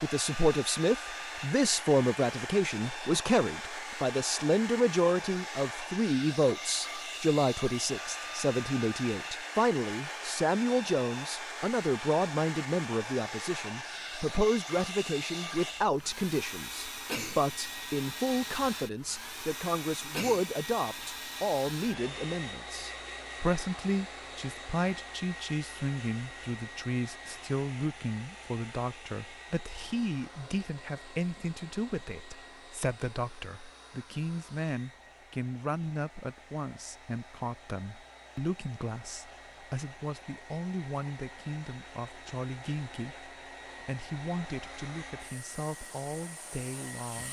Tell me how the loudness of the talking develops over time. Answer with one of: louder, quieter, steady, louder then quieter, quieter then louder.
quieter.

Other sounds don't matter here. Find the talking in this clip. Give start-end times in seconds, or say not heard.
0.0-47.2.